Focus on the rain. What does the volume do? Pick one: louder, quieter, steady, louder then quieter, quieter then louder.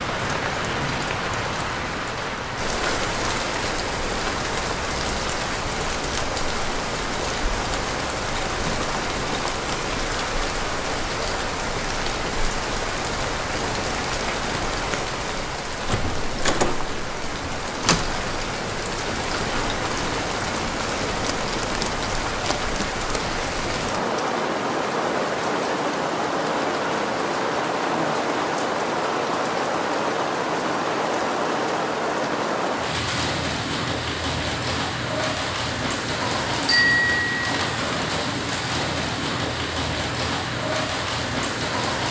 steady.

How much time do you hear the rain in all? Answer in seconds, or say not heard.
42 s.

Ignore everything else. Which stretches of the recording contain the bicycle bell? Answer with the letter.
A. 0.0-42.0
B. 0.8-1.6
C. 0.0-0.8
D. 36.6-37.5
D.